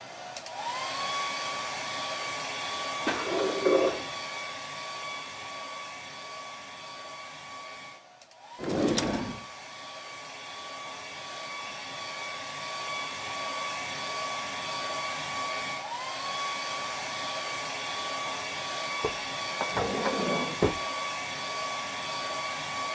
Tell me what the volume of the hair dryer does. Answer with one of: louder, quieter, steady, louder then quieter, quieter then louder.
quieter then louder.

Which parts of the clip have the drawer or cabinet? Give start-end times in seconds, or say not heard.
3.0-4.0, 8.6-9.4, 19.0-20.8.